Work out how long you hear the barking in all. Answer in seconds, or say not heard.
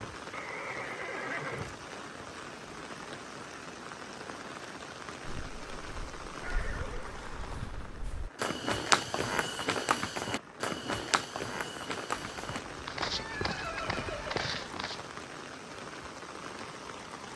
not heard.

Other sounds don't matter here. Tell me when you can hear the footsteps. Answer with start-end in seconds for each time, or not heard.
5.2-15.2.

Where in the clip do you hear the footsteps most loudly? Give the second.
9 s.